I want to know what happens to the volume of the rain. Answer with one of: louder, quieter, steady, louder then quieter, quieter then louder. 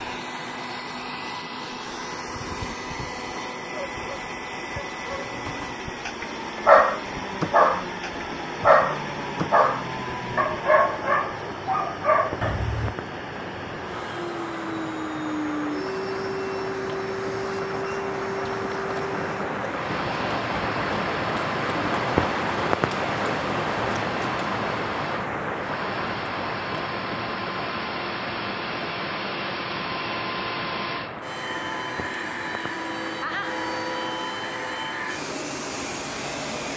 louder then quieter.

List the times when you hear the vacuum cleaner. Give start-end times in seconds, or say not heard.
0.0-36.7.